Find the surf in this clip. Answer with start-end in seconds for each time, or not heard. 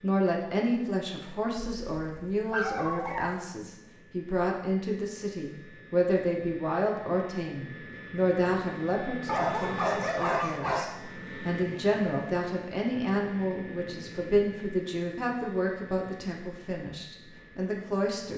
not heard.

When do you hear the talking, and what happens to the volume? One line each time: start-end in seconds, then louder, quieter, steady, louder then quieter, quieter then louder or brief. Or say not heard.
0.0-18.3 steady.